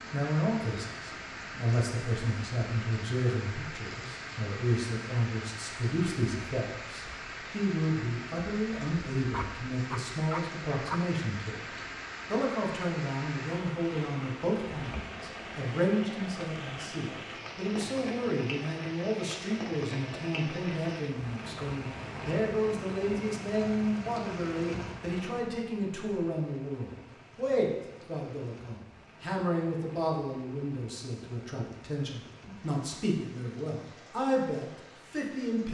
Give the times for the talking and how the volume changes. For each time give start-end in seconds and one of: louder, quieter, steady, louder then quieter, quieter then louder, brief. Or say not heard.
0.1-35.6 steady.